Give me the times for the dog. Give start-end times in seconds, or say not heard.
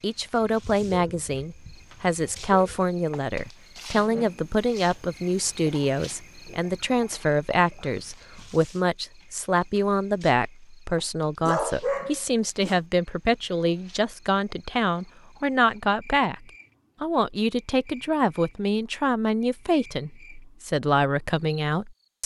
0.6-2.9, 11.4-12.8.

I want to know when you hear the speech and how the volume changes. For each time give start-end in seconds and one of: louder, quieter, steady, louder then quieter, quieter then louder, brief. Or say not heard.
0.0-22.2 steady.